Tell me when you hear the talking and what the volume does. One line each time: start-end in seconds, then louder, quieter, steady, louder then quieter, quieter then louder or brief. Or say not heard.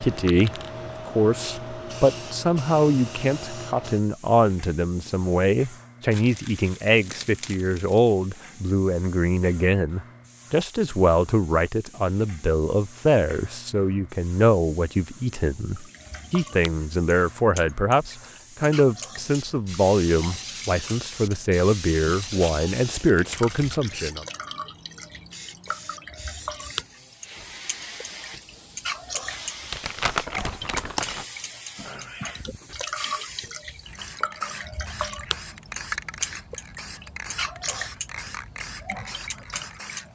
0.0-24.2 steady.